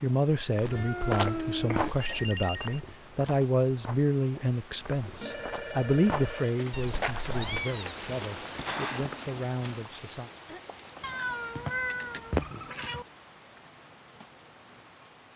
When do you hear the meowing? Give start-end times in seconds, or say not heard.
0.7-2.1, 6.7-8.0, 11.0-13.1.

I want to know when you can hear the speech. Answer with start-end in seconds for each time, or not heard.
0.0-10.3.